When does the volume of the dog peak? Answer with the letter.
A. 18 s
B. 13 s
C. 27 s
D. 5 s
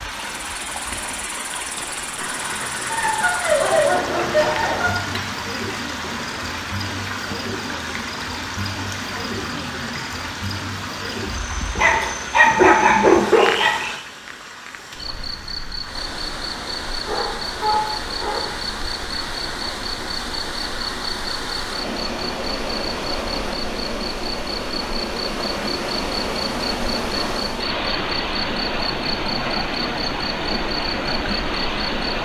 B.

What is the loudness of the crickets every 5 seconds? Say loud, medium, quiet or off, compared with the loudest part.
medium, loud, loud, loud, loud, loud, loud.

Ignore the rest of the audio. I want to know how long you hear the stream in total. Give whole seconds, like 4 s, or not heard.
32 s.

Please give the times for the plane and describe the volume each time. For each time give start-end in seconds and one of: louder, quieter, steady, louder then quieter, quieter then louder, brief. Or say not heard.
not heard.